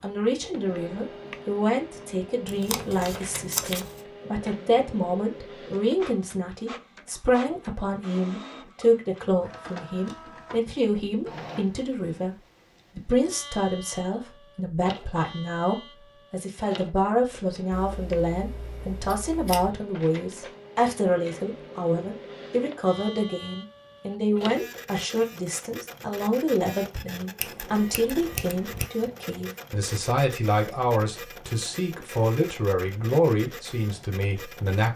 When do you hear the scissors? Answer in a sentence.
You can hear the scissors from 2.5 to 4.0 s, from 17.7 to 19.8 s and from 27.4 to 28.9 s.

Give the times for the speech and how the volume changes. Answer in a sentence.
The speech can be heard from 0.0 to 12.3 s, at a steady volume; and from 12.9 to 34.9 s, at a steady volume.